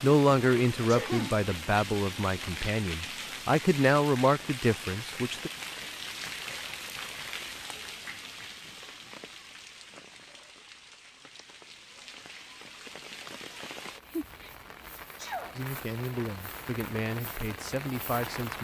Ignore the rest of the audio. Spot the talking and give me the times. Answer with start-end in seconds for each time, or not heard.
0.0-5.5, 15.6-18.5.